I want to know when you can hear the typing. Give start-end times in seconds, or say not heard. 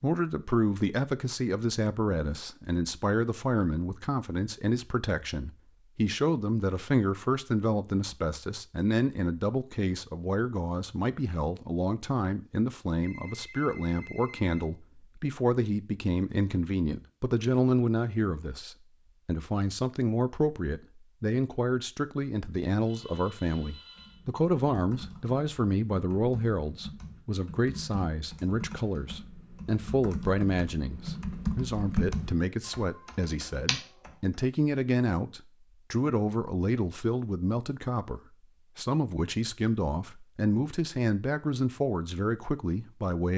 23.9-34.4.